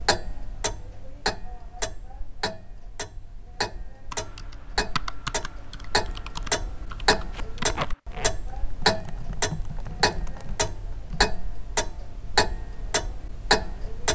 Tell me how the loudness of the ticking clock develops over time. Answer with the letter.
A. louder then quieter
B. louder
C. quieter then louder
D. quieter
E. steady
B.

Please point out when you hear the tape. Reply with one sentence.
The tape can be heard from 7.3 to 8.3 s.